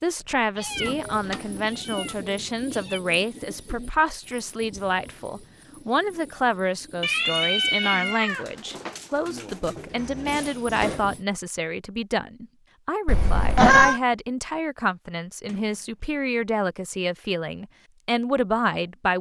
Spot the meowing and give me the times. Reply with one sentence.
You can hear the meowing from 0.6 to 3.0 s, from 7.0 to 9.0 s and from 13.1 to 14.0 s.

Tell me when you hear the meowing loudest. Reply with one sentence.
The volume of the meowing peaks at 14 seconds.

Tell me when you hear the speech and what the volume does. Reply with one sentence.
The speech can be heard from 0.0 to 19.1 s, at a steady volume.